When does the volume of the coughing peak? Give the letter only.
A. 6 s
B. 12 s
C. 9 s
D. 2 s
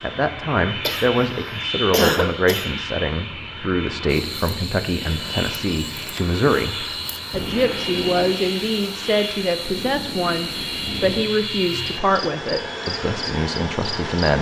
D.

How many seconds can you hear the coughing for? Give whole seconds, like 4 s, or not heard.
2 s.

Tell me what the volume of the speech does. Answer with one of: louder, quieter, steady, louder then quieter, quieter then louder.
steady.